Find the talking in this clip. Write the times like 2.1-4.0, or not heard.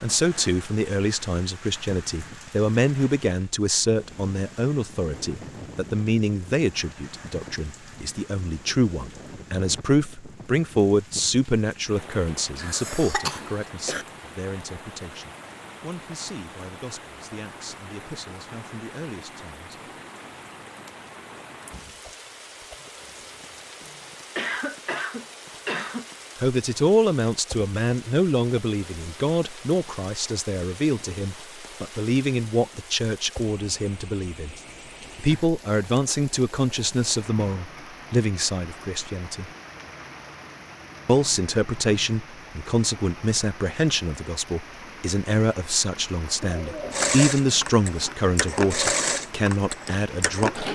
0.0-19.9, 26.4-34.5, 35.1-39.5, 41.0-50.6.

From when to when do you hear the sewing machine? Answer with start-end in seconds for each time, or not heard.
46.9-50.7.